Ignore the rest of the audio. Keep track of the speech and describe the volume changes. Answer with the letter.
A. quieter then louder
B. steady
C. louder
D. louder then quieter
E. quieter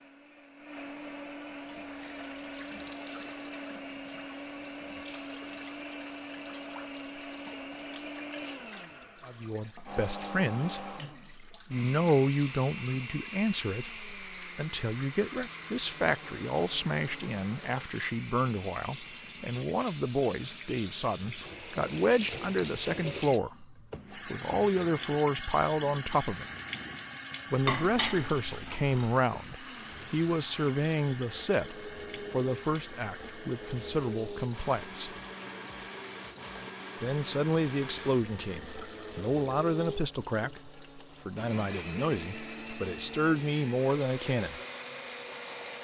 B.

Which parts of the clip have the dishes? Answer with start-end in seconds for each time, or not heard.
27.6-29.2.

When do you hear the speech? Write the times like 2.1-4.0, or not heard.
9.2-26.4, 27.5-35.1, 37.0-44.6.